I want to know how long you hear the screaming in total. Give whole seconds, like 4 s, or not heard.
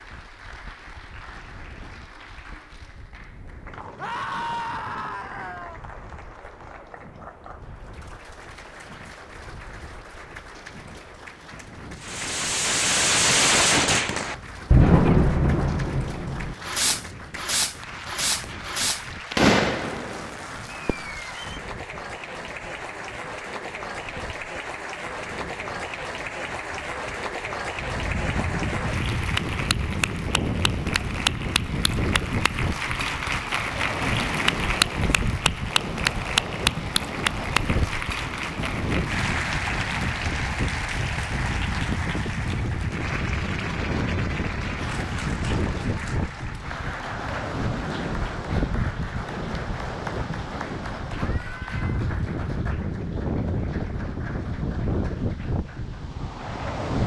3 s.